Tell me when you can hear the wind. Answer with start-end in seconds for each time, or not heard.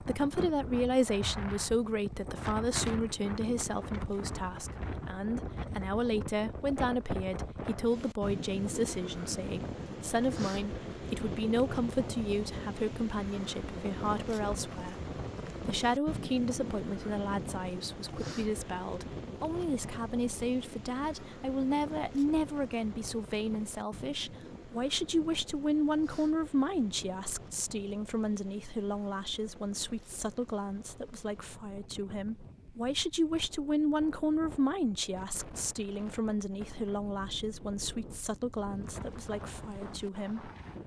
0.0-40.8.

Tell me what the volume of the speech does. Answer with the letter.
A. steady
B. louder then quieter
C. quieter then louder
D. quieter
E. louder
A.